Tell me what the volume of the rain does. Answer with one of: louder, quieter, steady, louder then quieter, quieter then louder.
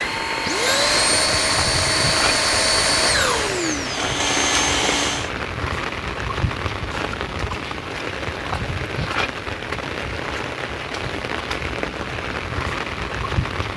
steady.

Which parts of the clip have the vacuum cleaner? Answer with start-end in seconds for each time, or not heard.
0.0-5.3.